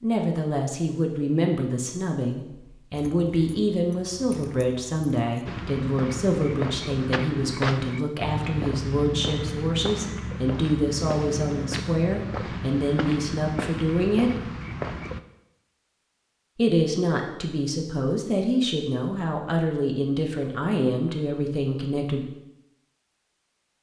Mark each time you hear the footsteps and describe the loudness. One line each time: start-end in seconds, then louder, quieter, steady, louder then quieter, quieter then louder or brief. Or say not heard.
5.5-15.2 steady.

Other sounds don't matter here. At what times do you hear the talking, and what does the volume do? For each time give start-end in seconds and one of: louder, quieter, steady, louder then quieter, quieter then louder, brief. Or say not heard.
0.0-14.4 steady
16.6-22.2 steady.